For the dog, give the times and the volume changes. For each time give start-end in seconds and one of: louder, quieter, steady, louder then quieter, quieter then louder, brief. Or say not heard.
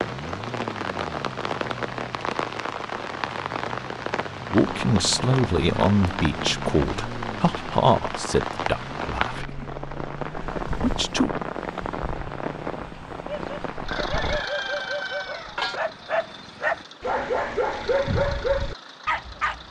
13.2-19.6 louder.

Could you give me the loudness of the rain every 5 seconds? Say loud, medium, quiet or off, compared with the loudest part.
loud, loud, loud, quiet.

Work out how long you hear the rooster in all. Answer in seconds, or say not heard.
2 s.